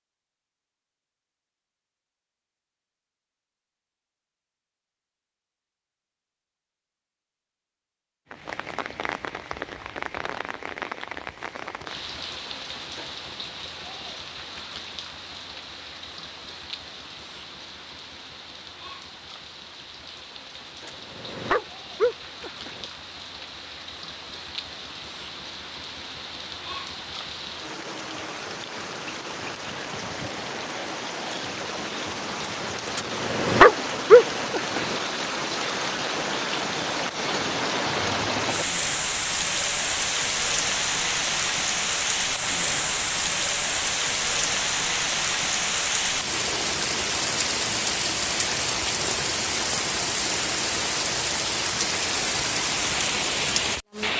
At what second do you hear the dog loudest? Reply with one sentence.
The loudest moment of the dog is at 34 seconds.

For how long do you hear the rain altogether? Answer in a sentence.
The rain can be heard for 46 seconds in total.